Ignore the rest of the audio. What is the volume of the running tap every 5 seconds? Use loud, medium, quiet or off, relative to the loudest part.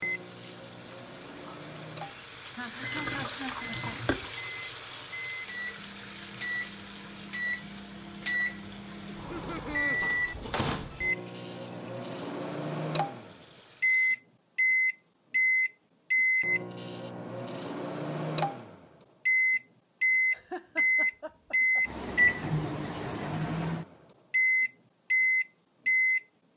loud, medium, quiet, off, off, off.